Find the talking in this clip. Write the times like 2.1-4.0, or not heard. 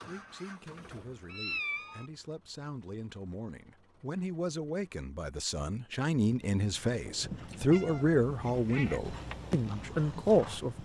0.0-10.7.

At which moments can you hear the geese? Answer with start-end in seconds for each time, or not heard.
not heard.